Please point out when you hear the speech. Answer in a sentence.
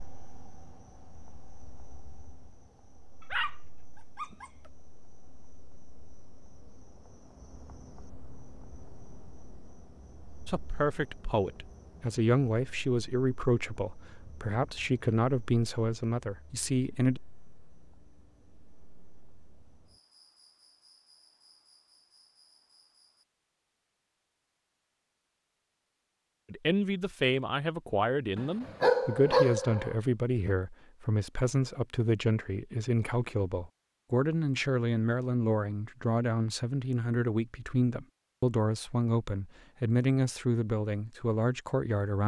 The speech can be heard from 10.4 to 17.2 s and from 26.5 to 42.2 s.